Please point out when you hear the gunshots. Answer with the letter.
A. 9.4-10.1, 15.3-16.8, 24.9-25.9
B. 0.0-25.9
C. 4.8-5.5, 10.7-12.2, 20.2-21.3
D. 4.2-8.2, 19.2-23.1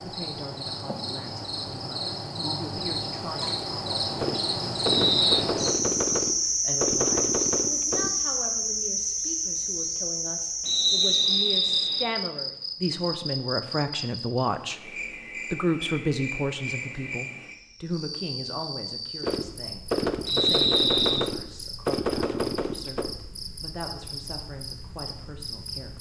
D.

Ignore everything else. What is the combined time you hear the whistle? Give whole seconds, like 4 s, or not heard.
3 s.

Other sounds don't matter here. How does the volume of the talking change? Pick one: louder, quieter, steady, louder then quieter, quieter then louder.
louder then quieter.